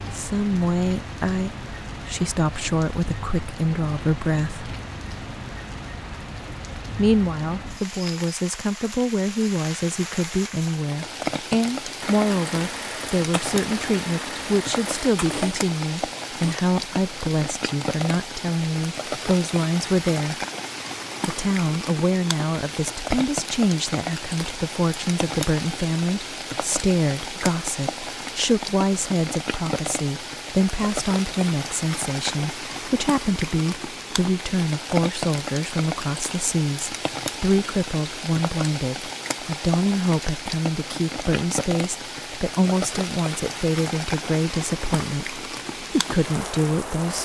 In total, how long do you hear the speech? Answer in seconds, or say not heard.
44 s.